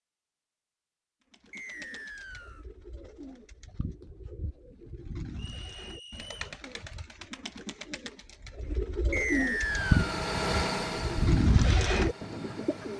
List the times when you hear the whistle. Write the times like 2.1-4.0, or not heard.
1.5-2.6, 5.3-6.3, 9.1-10.2.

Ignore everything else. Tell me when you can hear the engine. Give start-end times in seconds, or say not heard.
9.4-12.9.